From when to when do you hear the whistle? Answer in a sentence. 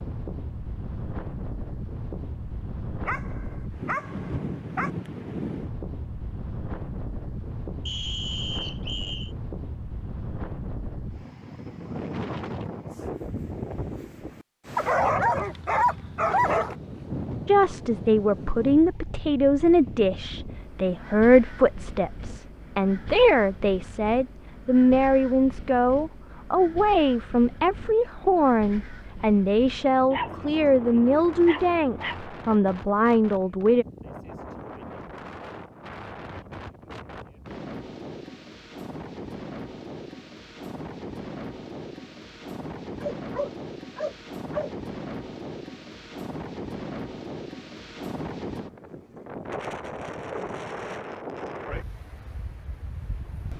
The whistle can be heard from 7.8 to 9.3 s.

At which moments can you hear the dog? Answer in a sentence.
You can hear the dog from 3.0 to 4.9 s, from 14.8 to 16.8 s, from 30.1 to 32.2 s and from 43.0 to 44.7 s.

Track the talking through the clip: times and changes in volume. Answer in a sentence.
You can hear the talking from 17.4 to 33.9 s, at a steady volume.